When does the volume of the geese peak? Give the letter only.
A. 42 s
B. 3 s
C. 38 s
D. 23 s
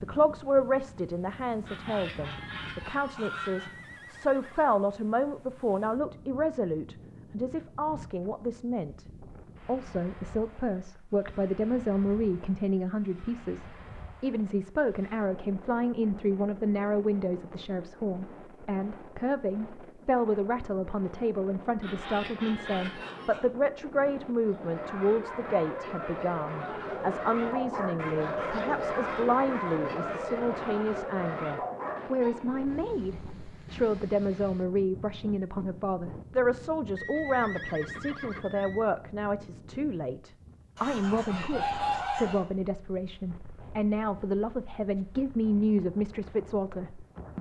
A.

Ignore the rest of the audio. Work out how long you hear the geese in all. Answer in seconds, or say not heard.
5 s.